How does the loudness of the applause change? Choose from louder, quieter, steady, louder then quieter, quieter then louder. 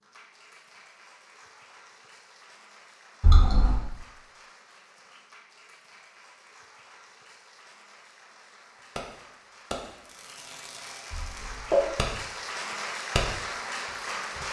louder.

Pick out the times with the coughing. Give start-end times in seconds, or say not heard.
3.2-3.9, 11.1-11.9.